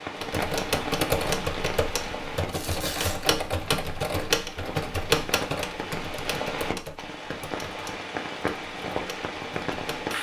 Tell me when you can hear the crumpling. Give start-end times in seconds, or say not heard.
2.5-3.3.